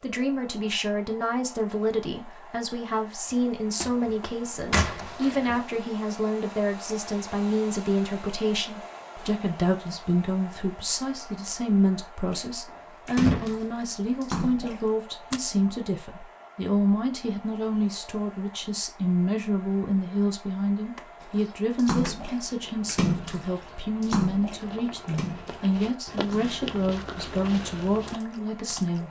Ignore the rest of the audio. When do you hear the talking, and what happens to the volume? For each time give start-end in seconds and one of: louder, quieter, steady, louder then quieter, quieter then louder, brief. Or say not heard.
0.0-29.0 steady.